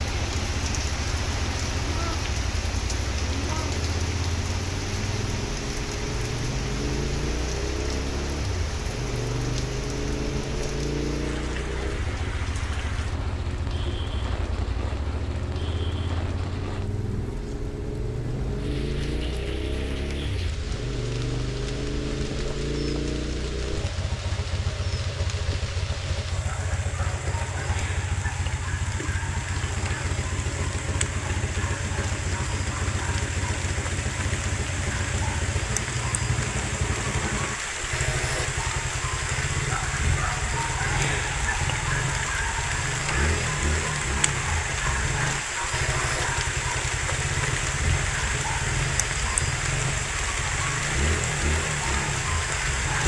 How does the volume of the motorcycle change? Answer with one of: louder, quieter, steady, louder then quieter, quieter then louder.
steady.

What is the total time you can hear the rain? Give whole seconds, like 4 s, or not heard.
53 s.